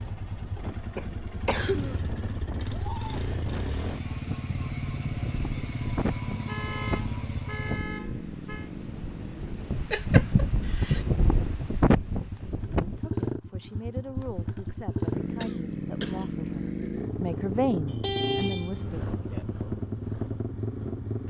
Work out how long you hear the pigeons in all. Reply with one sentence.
The pigeons can't be heard in this clip.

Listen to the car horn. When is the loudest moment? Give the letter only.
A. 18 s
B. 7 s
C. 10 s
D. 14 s
A.